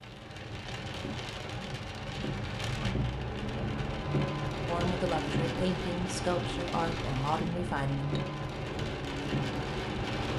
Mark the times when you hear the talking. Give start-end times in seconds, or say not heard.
4.7-8.2.